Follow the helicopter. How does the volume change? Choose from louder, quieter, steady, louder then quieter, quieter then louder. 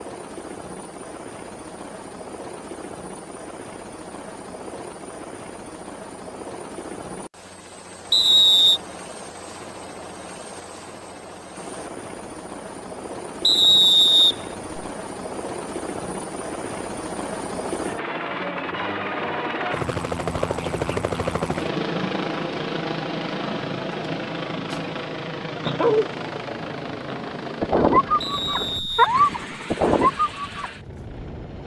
louder then quieter.